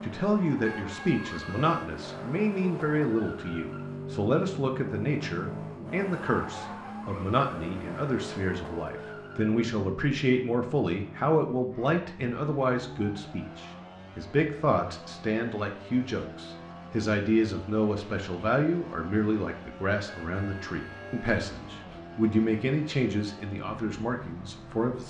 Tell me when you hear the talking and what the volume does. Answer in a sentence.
You can hear the talking from 0.0 to 25.0 s, at a steady volume.